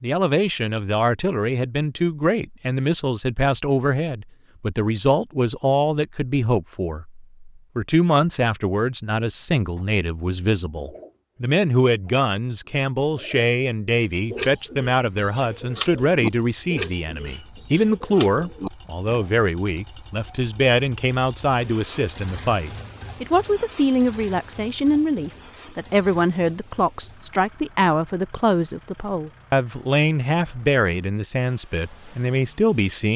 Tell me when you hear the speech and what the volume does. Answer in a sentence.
The speech can be heard from 0.0 to 33.1 s, at a steady volume.